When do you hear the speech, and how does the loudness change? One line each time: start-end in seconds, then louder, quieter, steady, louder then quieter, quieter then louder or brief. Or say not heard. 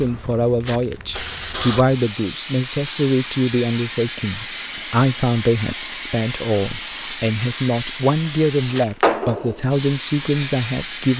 0.0-11.1 steady.